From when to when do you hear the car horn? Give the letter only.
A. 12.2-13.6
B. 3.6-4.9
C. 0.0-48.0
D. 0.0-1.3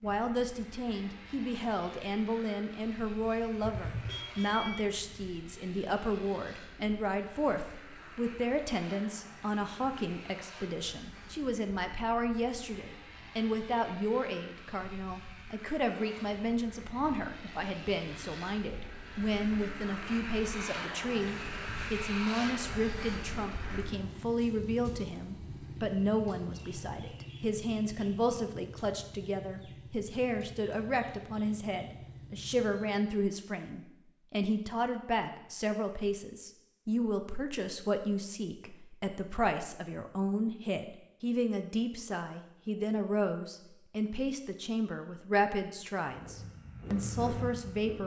B.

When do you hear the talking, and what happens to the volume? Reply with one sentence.
You can hear the talking from 0.0 to 48.0 s, at a steady volume.